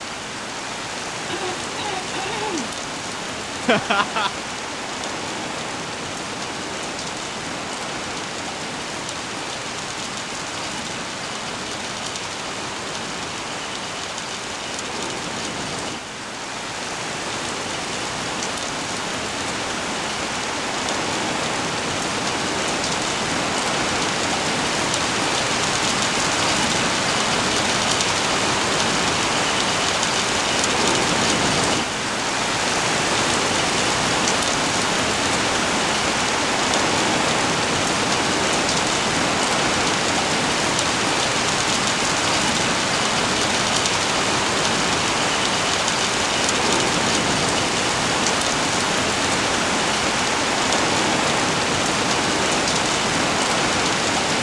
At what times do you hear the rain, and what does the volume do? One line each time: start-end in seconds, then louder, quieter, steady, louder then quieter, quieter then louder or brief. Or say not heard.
0.0-54.3 louder.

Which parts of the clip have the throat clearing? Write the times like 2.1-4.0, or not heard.
1.2-2.8.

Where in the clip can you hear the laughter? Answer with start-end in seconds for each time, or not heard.
3.6-4.3.